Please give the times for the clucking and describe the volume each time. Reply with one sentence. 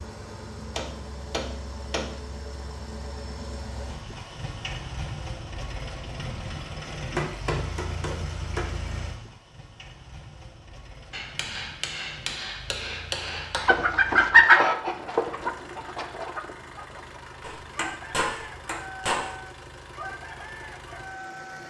You can hear the clucking from 13.6 to 21.6 s, getting quieter.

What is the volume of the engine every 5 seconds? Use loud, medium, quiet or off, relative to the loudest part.
loud, loud, medium, medium, medium.